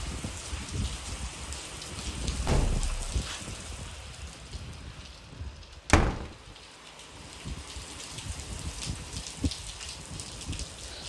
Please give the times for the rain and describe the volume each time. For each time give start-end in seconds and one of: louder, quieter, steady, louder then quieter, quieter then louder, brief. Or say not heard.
0.0-11.0 quieter then louder.